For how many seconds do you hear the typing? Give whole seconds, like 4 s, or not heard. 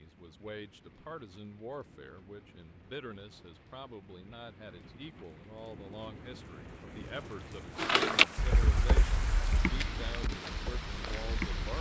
4 s.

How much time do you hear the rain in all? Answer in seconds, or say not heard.
12 s.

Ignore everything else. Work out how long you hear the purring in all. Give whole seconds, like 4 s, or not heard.
not heard.